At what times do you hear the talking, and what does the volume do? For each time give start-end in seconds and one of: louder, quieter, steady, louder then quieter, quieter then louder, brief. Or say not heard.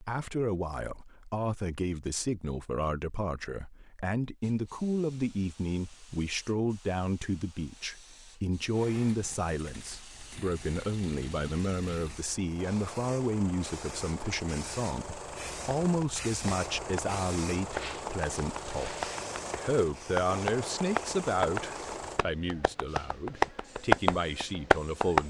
0.0-25.2 steady.